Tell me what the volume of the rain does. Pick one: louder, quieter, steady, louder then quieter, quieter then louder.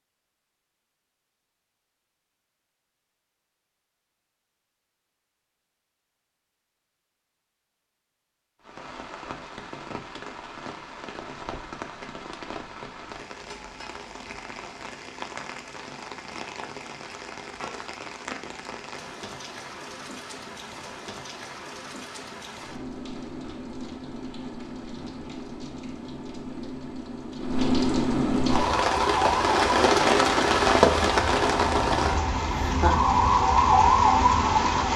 louder.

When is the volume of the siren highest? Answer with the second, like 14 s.
34 s.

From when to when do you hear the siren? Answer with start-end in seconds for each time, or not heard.
28.4-34.9.